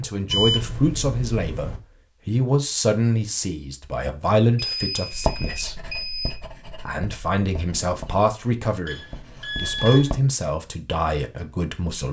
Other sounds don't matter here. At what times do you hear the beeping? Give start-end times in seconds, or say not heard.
0.3-1.8, 4.5-6.4, 8.8-10.2.